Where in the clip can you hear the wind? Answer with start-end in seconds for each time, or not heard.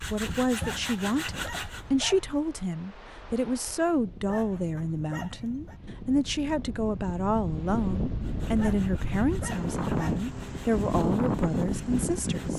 0.0-12.5.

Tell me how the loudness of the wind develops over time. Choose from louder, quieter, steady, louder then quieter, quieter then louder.
louder.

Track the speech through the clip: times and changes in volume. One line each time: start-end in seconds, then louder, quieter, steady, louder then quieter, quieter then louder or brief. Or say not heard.
0.0-12.5 steady.